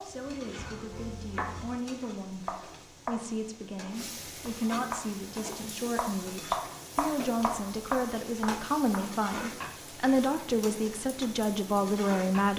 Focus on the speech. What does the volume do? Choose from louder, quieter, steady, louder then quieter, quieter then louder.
louder.